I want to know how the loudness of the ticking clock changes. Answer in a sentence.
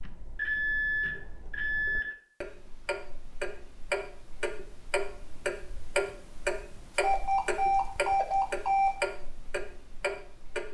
The loudness of the ticking clock goes up.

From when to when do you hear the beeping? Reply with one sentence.
The beeping can be heard from 0.3 to 2.0 s and from 7.0 to 8.9 s.